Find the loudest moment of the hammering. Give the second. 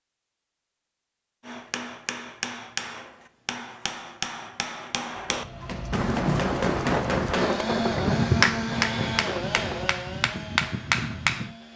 8 s.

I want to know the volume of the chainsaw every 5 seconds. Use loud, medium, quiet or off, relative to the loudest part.
off, loud, medium.